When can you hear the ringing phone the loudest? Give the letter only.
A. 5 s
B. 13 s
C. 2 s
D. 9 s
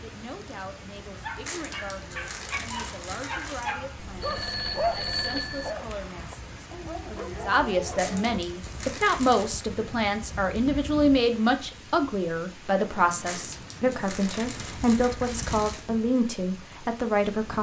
A.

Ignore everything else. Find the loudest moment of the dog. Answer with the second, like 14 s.
5 s.